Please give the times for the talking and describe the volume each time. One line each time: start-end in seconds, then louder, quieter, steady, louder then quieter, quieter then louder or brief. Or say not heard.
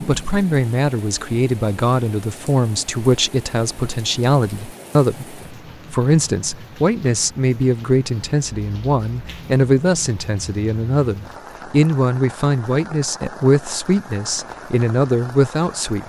0.0-16.0 steady.